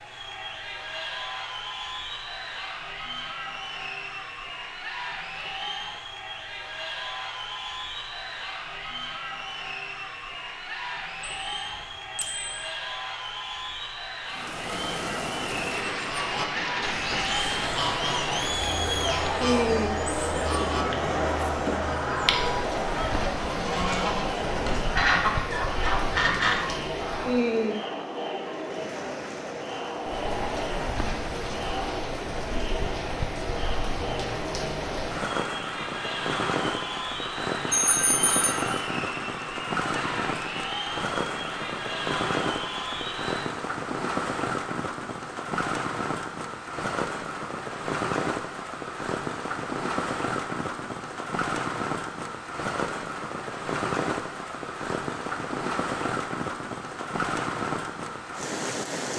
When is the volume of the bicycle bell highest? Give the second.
38 s.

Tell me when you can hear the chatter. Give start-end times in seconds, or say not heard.
0.0-43.5.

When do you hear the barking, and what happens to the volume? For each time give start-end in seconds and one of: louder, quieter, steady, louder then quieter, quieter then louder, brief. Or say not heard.
not heard.